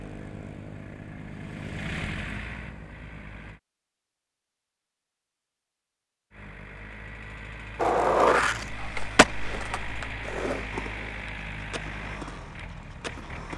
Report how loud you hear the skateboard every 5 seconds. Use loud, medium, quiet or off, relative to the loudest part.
off, loud, quiet.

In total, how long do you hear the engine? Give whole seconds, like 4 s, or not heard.
11 s.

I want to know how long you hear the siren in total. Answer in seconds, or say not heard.
not heard.